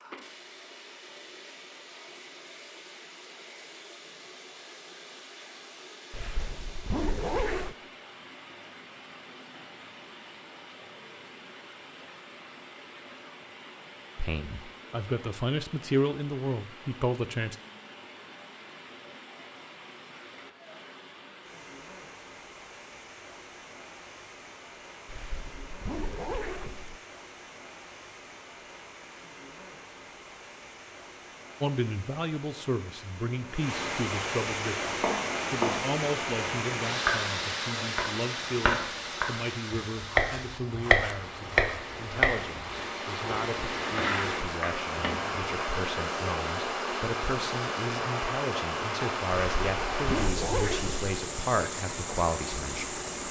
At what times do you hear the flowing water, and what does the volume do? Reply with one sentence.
You can hear the flowing water from 0.0 to 53.2 s, getting louder.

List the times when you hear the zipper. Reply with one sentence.
The zipper can be heard from 6.1 to 7.8 s, from 25.1 to 27.0 s and from 49.4 to 51.1 s.